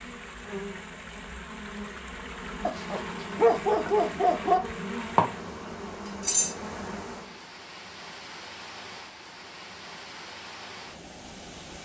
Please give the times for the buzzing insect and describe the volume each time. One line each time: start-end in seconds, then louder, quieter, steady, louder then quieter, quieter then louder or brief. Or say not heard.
0.0-7.2 louder.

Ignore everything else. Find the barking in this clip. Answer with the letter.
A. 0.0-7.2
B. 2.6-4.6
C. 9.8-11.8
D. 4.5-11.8
B.